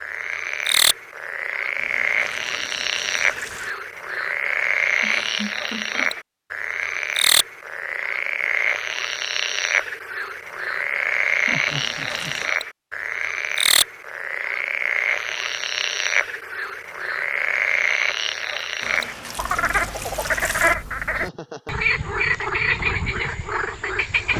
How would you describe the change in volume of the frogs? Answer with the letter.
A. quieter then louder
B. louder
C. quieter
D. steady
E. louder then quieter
D.